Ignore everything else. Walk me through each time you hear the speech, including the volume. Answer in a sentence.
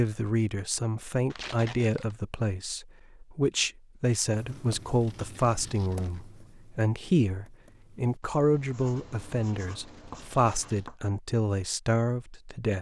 The speech can be heard from 0.0 to 12.7 s, at a steady volume.